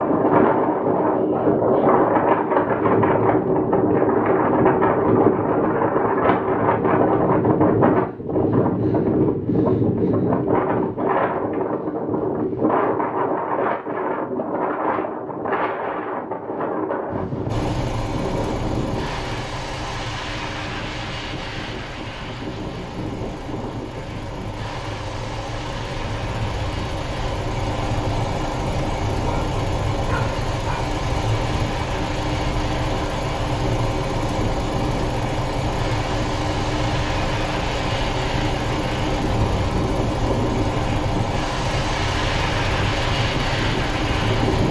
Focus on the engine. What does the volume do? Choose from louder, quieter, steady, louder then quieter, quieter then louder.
louder.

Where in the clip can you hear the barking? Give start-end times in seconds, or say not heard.
29.2-30.9.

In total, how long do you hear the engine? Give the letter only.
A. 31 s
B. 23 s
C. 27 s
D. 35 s
C.